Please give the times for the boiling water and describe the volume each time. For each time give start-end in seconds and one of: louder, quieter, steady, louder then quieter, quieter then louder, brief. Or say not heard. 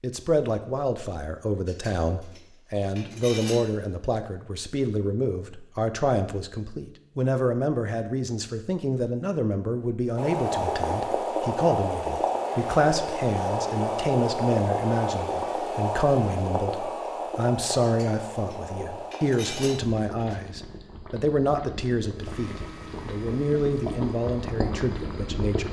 10.2-25.6 quieter then louder.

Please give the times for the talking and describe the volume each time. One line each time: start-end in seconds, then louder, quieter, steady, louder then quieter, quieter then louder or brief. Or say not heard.
0.0-25.6 steady.